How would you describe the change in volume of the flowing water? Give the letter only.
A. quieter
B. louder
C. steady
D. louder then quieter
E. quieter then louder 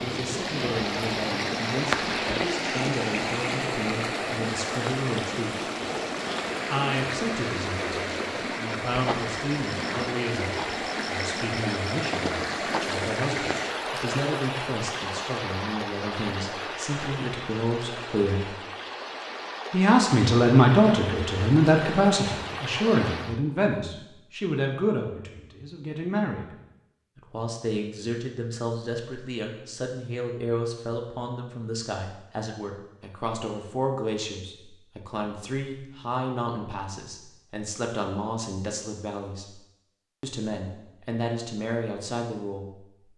A.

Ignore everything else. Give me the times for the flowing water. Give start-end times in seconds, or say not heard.
0.0-23.4.